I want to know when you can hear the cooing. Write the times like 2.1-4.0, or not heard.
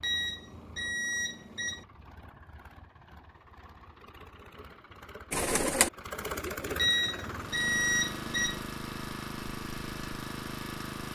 5.3-7.0.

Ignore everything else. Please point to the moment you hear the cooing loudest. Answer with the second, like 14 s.
6 s.